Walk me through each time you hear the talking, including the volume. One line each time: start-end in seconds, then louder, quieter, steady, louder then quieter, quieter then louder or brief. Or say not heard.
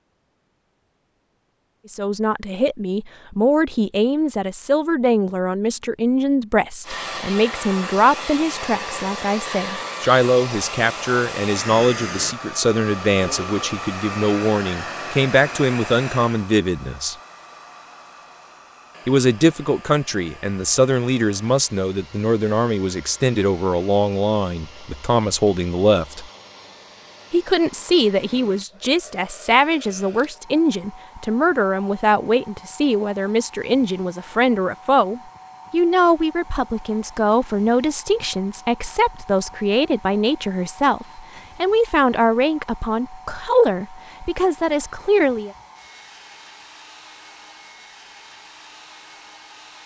1.9-17.1 steady
19.1-26.2 steady
27.3-45.5 steady.